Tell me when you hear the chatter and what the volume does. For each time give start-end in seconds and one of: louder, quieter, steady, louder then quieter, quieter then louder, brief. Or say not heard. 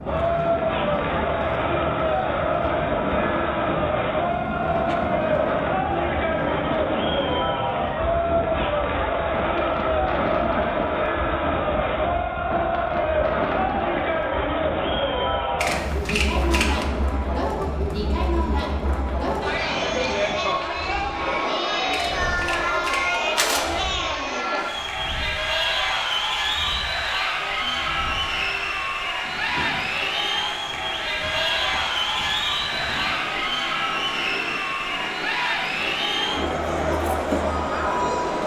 0.0-38.4 steady.